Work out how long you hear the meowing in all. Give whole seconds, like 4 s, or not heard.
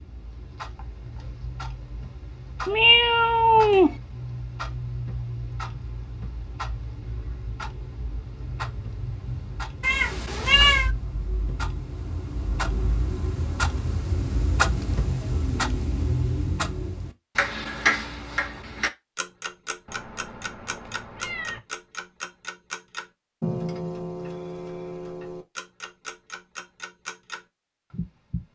4 s.